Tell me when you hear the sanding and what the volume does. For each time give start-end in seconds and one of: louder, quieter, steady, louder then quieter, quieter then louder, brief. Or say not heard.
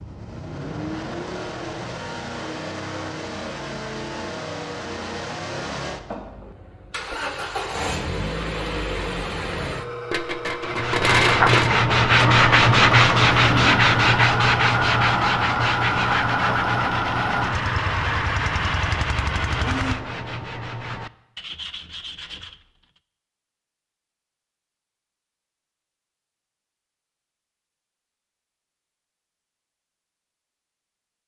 10.6-23.0 quieter.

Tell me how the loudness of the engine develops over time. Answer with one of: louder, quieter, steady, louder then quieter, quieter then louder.
louder.